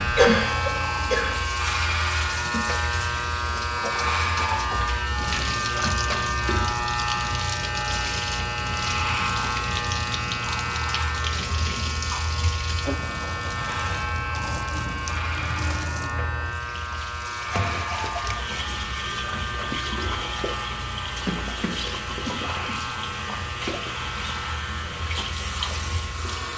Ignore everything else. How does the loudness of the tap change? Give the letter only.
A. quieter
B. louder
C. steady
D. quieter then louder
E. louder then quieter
C.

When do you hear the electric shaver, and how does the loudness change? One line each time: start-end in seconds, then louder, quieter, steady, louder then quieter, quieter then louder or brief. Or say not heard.
0.0-26.5 quieter.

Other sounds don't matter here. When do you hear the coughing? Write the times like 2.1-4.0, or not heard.
0.1-1.4, 21.2-22.8.